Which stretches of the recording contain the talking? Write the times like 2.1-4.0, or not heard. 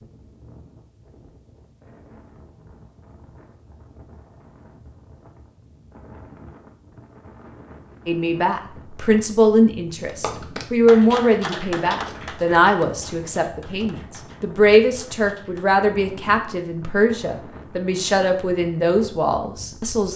8.1-20.1.